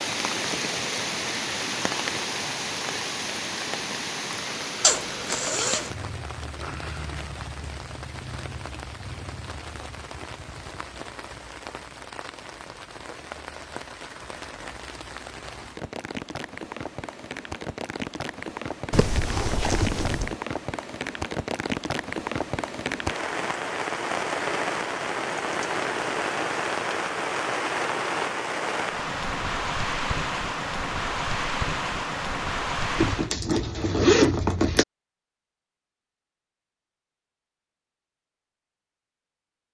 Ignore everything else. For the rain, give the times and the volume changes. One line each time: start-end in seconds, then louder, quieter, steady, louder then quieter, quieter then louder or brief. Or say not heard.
0.0-33.3 quieter then louder.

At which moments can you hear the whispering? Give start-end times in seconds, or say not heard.
not heard.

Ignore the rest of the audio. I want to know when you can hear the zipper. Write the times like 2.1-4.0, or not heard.
4.8-5.9, 18.9-20.4, 33.0-34.9.